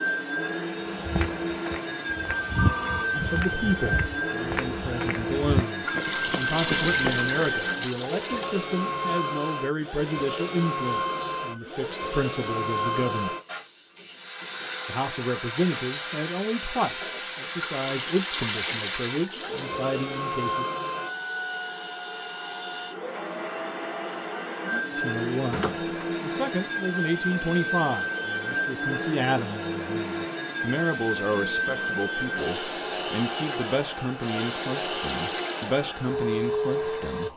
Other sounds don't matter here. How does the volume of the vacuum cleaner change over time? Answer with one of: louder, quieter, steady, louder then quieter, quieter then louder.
steady.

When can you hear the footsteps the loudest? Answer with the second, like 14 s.
3 s.